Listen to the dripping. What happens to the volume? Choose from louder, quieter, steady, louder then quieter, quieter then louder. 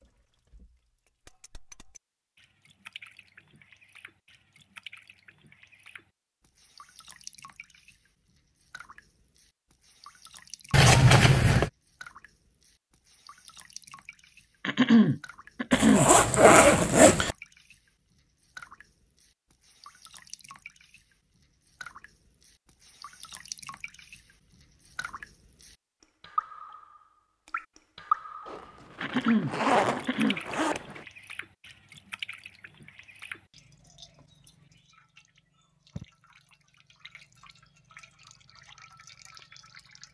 louder then quieter.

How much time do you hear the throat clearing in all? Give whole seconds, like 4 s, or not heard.
3 s.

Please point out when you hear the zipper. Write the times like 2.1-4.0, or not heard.
10.7-11.7, 15.7-17.4, 28.4-31.1.